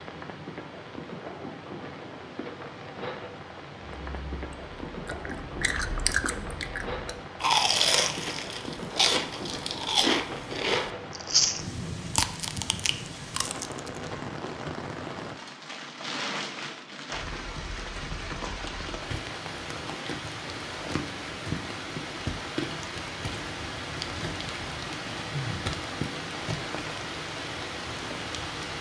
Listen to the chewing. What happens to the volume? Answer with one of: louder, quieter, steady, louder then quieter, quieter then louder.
louder then quieter.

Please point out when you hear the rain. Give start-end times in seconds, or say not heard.
0.0-28.7.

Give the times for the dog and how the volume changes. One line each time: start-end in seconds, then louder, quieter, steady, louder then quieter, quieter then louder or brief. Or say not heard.
not heard.